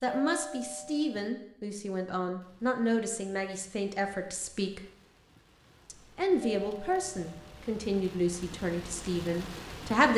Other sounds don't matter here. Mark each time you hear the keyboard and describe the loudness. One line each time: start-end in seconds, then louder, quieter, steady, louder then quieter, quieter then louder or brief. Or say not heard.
not heard.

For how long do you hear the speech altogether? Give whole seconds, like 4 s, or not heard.
9 s.